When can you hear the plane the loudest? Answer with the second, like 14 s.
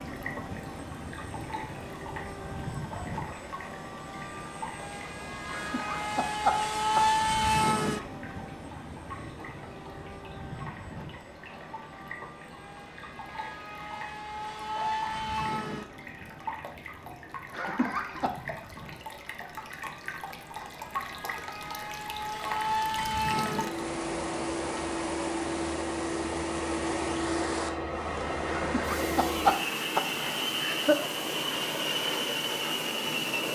7 s.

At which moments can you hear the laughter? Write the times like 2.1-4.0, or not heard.
5.5-7.0, 17.5-18.3, 28.6-31.1.